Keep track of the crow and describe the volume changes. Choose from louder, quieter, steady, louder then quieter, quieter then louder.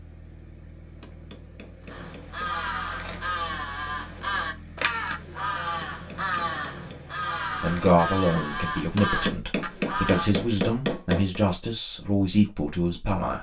steady.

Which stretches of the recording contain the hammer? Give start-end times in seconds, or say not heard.
1.0-2.5, 5.5-7.0, 8.9-11.4.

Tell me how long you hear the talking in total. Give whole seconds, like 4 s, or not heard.
6 s.